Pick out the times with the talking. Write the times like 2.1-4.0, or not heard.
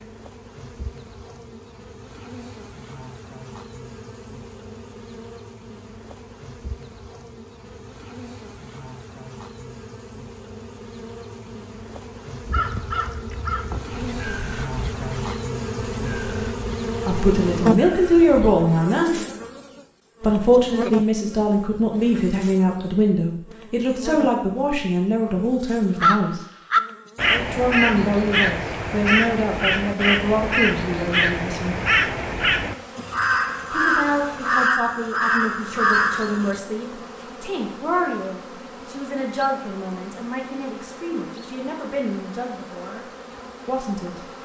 17.1-19.1, 20.2-26.4, 27.4-31.8, 33.7-43.0, 43.6-44.2.